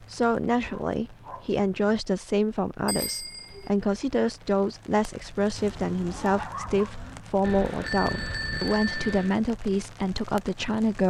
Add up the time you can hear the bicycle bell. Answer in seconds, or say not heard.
3 s.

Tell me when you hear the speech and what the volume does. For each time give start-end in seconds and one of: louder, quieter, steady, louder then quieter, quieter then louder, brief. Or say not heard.
0.0-11.0 steady.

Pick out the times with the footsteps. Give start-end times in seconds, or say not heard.
not heard.